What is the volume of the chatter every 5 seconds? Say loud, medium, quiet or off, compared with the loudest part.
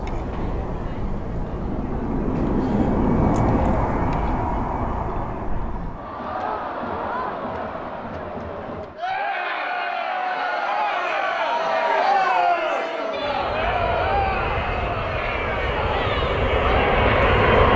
quiet, medium, loud, medium.